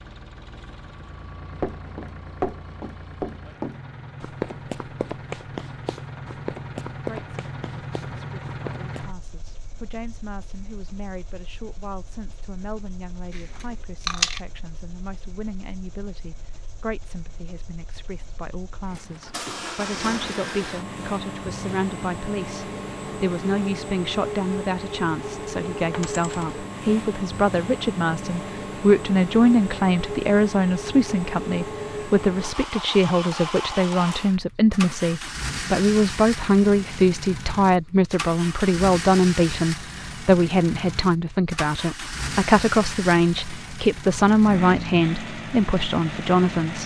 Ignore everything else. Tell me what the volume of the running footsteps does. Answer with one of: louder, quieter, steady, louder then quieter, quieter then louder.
quieter.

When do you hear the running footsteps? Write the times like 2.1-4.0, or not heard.
1.6-9.1.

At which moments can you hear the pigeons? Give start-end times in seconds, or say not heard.
not heard.